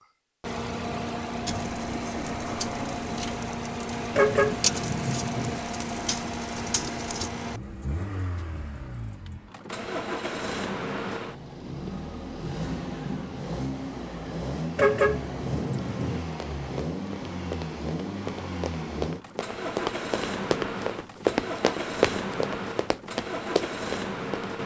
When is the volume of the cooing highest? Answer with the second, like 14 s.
5 s.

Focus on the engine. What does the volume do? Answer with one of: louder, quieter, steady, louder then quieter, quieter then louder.
steady.